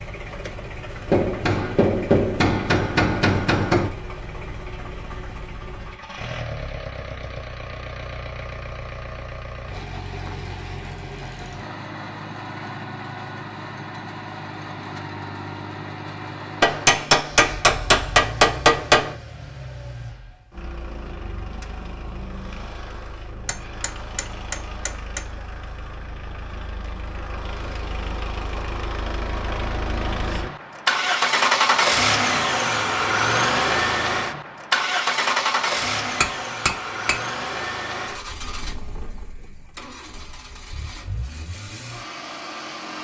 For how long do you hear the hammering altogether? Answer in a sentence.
You can hear the hammering for 8 seconds altogether.